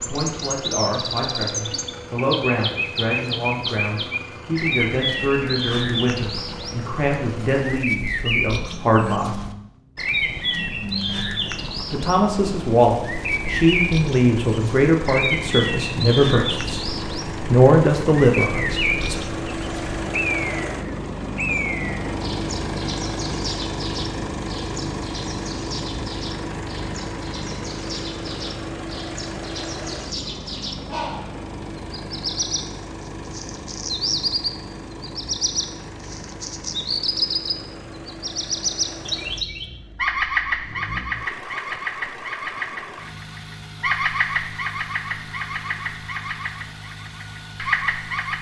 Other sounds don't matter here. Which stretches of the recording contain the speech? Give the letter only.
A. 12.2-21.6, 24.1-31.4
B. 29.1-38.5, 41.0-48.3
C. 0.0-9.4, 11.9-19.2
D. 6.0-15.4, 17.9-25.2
C.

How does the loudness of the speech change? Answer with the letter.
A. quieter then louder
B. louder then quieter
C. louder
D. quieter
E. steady
C.